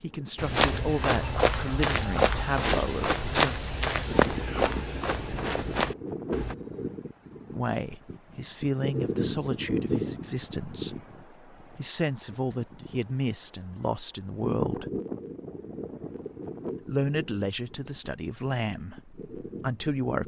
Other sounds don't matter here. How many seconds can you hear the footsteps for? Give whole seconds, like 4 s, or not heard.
6 s.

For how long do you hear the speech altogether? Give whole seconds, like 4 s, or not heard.
14 s.